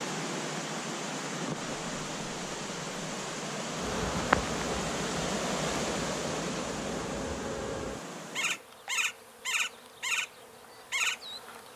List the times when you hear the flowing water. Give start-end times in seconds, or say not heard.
0.0-8.6.